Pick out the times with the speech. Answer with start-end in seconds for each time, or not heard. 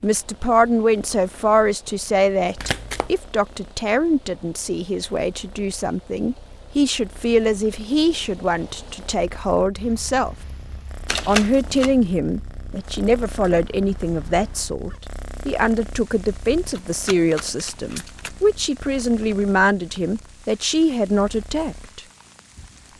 0.0-10.3, 11.2-22.0.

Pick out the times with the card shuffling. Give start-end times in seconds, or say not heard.
2.5-3.1, 11.1-11.9, 16.7-18.4.